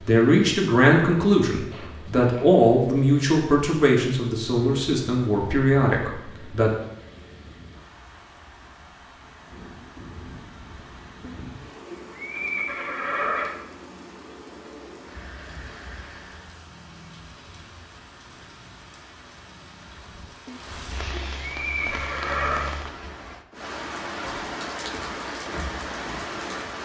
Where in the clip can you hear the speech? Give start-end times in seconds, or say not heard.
0.1-6.7.